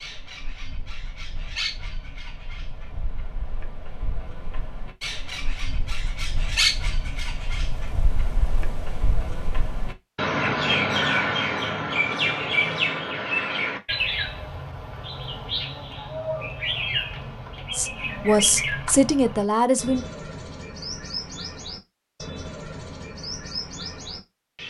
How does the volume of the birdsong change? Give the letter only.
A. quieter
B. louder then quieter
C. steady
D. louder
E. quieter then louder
B.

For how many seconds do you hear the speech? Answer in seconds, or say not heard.
2 s.